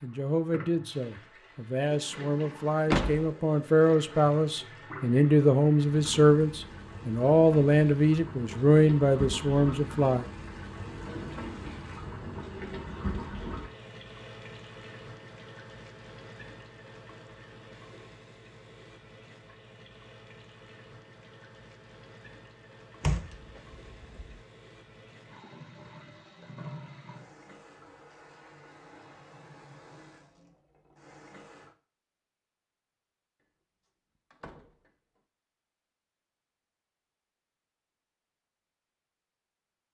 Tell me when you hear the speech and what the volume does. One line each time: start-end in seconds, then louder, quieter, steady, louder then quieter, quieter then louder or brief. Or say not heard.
0.0-10.2 louder.